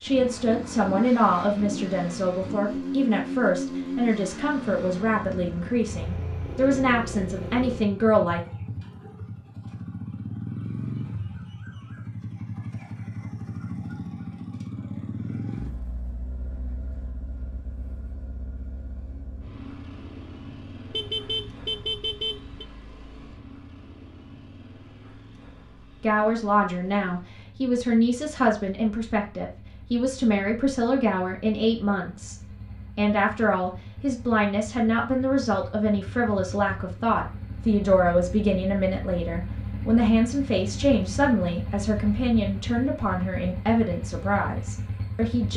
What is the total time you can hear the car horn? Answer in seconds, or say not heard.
2 s.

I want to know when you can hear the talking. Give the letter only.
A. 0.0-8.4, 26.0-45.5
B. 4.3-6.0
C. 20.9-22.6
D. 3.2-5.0
A.